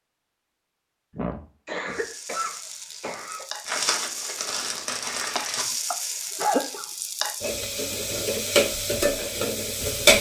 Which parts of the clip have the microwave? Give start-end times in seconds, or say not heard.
not heard.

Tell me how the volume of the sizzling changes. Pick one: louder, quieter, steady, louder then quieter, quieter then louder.
louder.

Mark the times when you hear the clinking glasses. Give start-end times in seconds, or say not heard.
not heard.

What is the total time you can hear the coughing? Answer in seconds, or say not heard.
4 s.